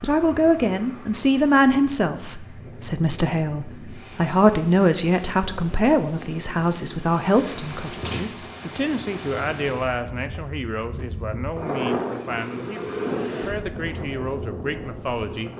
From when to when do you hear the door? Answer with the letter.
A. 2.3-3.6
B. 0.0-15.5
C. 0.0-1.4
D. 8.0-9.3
D.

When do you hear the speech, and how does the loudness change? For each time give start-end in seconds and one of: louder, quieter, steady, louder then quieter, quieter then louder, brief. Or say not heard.
0.0-15.5 quieter.